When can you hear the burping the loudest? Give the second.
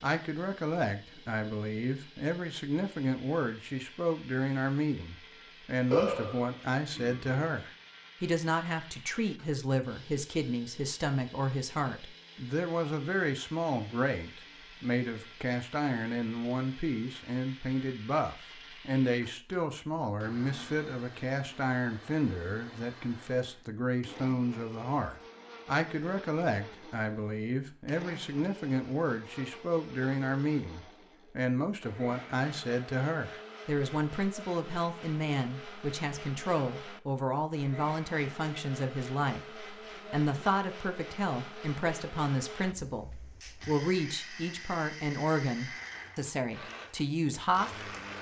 6 s.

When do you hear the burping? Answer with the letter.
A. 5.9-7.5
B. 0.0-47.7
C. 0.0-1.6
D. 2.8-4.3
A.